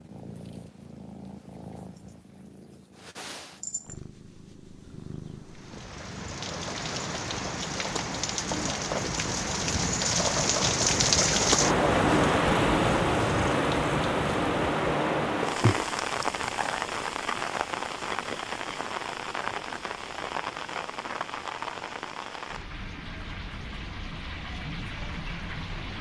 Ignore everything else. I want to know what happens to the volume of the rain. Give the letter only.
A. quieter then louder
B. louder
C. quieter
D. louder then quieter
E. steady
D.